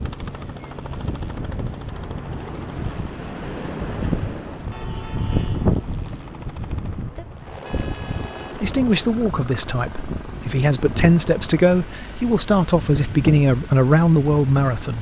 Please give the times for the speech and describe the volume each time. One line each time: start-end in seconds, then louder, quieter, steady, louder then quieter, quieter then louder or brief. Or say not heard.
8.6-14.9 louder.